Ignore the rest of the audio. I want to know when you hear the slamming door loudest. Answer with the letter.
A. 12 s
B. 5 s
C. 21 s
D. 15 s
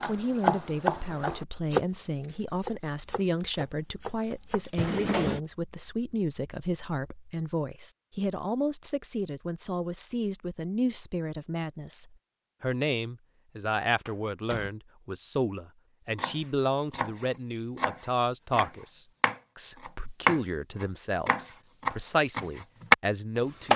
B.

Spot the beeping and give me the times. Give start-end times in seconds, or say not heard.
not heard.